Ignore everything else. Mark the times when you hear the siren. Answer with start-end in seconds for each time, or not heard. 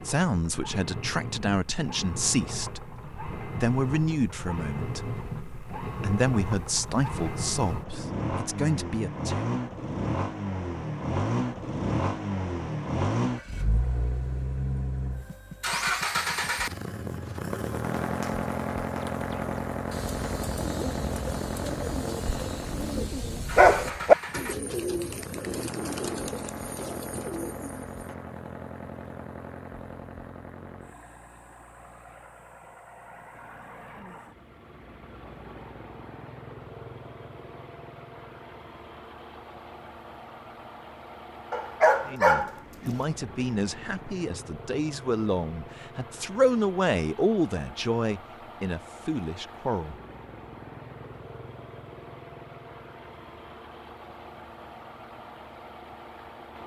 not heard.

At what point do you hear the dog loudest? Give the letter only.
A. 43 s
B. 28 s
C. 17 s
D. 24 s
D.